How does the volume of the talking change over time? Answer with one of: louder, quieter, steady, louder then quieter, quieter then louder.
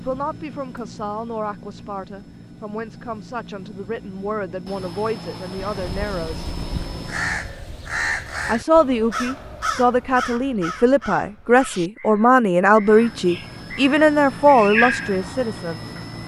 louder.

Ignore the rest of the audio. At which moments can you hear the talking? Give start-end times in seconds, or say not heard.
0.0-6.5, 8.4-15.8.